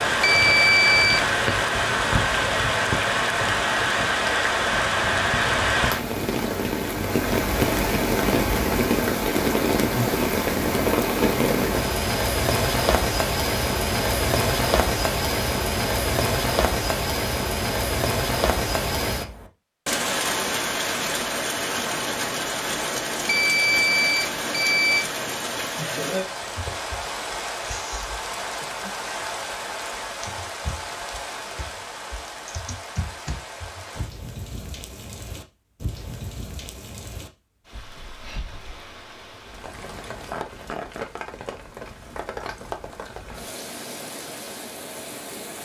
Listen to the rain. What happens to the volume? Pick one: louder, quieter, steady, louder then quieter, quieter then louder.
quieter.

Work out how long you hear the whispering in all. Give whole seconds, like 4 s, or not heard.
not heard.